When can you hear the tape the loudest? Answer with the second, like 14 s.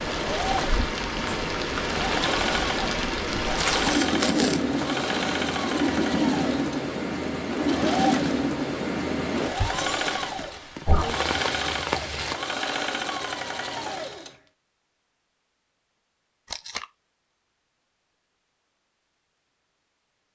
4 s.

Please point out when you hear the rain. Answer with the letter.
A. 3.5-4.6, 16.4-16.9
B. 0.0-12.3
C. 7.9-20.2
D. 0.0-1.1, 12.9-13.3
B.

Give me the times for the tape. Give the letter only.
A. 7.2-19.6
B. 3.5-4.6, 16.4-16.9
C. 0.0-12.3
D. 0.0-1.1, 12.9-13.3
B.